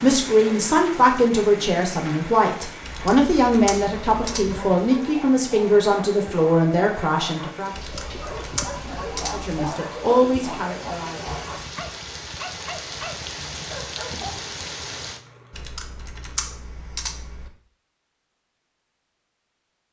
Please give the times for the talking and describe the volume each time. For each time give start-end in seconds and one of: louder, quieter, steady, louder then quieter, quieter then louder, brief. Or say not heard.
0.0-7.7 steady
9.3-11.2 brief.